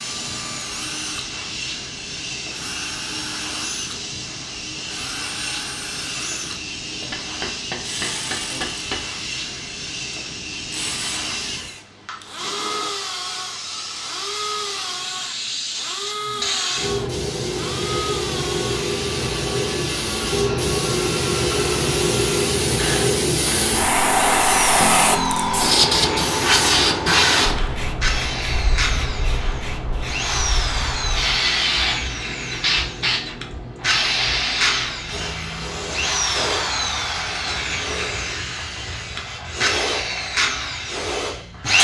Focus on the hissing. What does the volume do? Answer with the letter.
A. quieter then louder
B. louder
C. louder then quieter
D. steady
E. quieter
C.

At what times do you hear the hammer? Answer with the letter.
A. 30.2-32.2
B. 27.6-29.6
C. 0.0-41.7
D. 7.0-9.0
D.